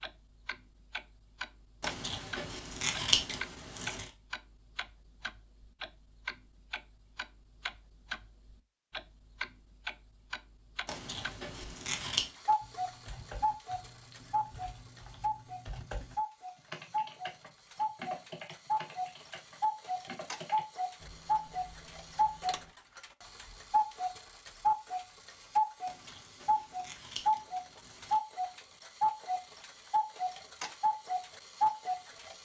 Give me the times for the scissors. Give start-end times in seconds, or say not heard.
1.8-4.1, 10.8-12.3, 25.9-28.2.